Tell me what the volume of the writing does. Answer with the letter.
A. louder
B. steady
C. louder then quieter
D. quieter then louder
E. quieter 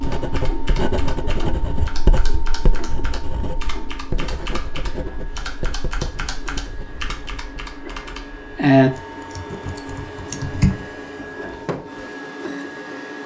E.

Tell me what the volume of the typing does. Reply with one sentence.
The volume of the typing goes up, then down.